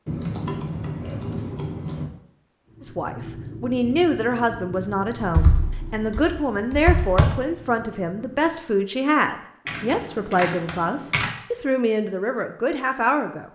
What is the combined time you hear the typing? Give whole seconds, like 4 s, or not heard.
6 s.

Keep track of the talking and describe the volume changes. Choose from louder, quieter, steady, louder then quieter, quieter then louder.
steady.